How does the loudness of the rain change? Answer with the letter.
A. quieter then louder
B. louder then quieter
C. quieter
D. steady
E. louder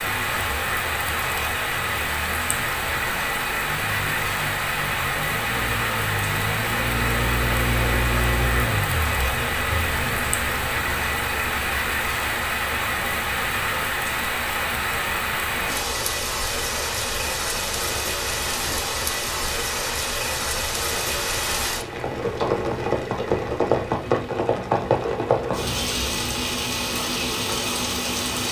D.